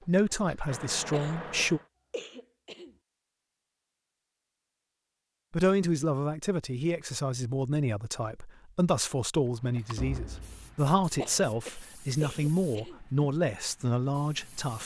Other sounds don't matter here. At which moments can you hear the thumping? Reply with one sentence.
The thumping can be heard from 9.9 to 10.8 s.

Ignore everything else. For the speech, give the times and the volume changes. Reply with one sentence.
You can hear the speech briefly from 0.1 to 1.8 s; and from 5.5 to 14.8 s, at a steady volume.